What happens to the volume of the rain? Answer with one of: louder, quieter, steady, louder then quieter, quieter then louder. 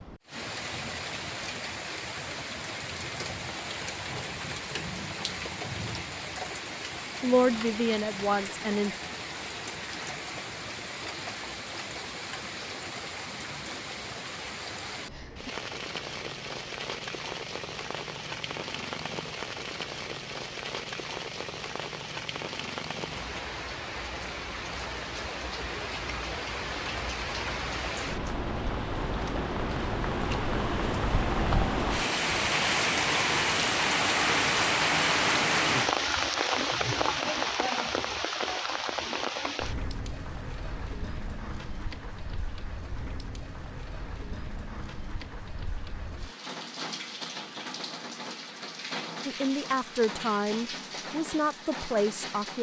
louder then quieter.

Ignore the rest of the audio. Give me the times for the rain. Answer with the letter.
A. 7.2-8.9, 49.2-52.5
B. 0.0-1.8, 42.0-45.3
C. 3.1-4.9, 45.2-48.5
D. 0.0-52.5
D.